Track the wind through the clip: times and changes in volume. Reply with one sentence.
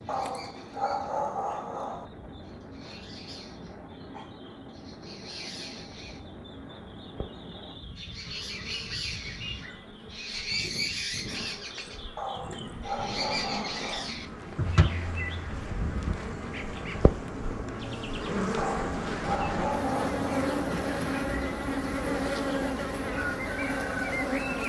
The wind can be heard from 0.0 to 24.6 s, getting louder.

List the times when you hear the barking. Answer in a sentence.
The barking can be heard from 0.1 to 2.0 s, from 12.2 to 14.1 s and from 18.6 to 20.6 s.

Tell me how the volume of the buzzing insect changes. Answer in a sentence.
The loudness of the buzzing insect goes up.